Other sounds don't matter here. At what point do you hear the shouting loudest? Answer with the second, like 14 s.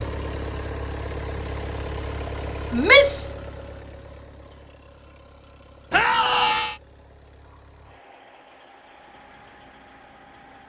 3 s.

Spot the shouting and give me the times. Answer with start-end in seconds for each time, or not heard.
2.7-3.3, 5.9-6.8.